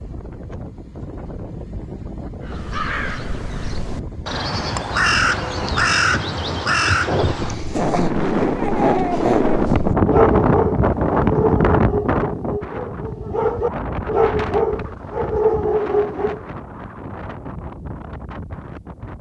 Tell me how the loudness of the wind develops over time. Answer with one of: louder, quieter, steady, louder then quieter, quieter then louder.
louder then quieter.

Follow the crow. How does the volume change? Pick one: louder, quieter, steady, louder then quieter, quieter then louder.
louder.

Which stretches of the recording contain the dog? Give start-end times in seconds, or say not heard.
7.3-16.4.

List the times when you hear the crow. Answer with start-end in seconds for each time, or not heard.
2.4-7.5.